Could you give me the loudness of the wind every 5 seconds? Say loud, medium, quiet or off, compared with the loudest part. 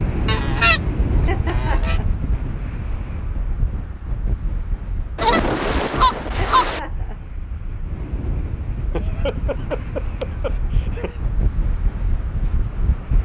loud, medium, loud.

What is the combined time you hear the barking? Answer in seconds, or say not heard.
not heard.